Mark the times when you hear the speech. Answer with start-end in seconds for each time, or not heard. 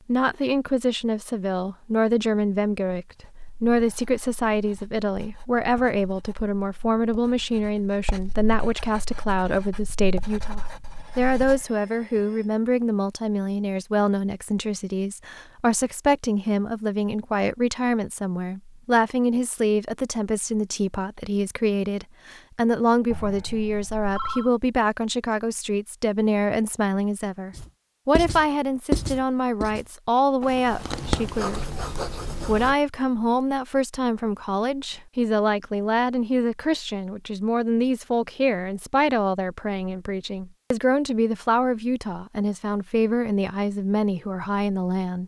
0.1-45.2.